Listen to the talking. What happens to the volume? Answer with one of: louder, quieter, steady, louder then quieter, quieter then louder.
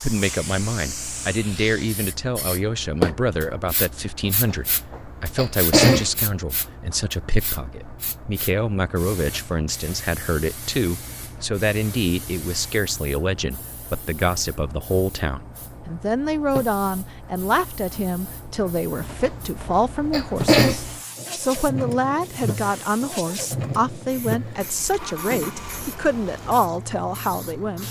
steady.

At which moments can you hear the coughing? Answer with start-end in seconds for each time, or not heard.
4.2-6.1, 18.9-20.8.